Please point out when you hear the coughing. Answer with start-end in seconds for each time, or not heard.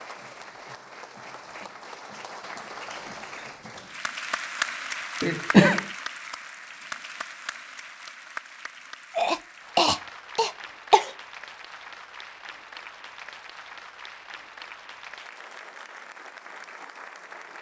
5.2-5.8, 9.2-11.1.